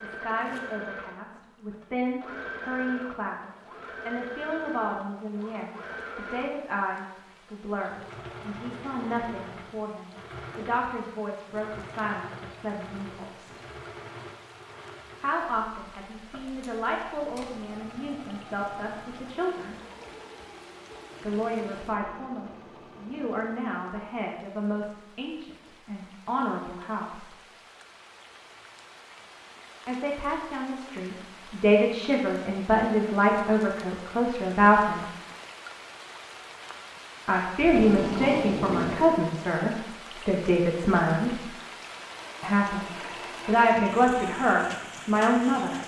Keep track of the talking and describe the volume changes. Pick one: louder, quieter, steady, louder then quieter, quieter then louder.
louder.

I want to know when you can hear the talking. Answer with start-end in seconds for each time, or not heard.
0.0-13.6, 15.2-19.8, 21.2-27.4, 29.9-35.0, 37.2-41.5, 42.4-45.8.